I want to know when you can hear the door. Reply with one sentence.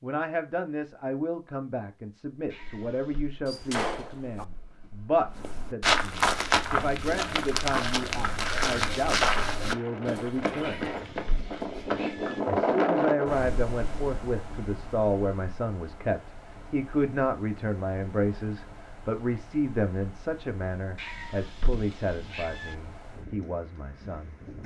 You can hear the door from 3.5 to 4.5 s.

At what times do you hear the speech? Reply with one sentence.
The speech can be heard from 0.0 to 10.9 s and from 12.4 to 24.4 s.